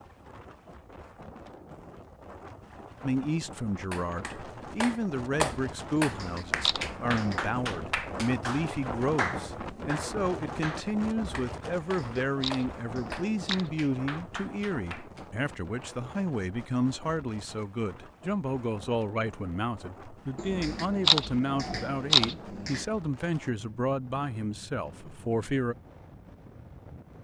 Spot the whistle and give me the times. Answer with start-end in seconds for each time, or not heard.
not heard.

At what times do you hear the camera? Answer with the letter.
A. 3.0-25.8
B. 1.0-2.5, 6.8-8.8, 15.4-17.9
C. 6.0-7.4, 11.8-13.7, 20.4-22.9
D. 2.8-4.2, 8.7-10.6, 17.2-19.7
C.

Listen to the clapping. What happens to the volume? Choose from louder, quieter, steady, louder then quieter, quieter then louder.
quieter.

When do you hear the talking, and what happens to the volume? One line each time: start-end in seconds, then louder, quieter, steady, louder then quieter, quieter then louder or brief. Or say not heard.
3.0-25.8 steady.